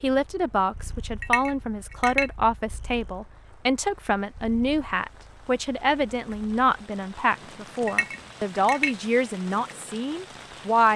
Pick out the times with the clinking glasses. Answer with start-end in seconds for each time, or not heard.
1.2-2.3, 7.8-8.9.